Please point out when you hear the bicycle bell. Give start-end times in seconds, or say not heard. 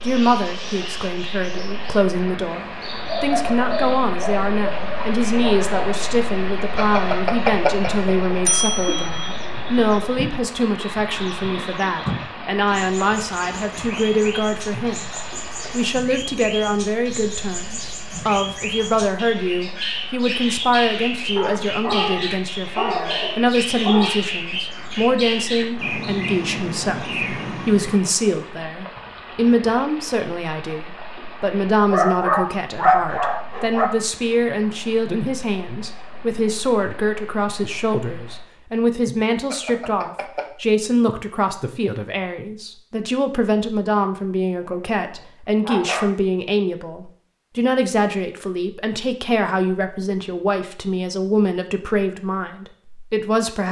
6.8-9.3, 39.5-40.5.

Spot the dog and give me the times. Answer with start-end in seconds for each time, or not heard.
3.0-5.8, 21.4-24.1, 31.9-33.9, 44.6-46.0.